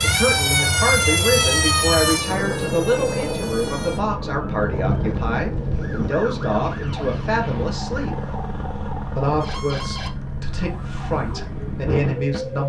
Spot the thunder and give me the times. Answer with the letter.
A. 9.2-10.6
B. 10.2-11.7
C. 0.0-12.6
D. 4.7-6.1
D.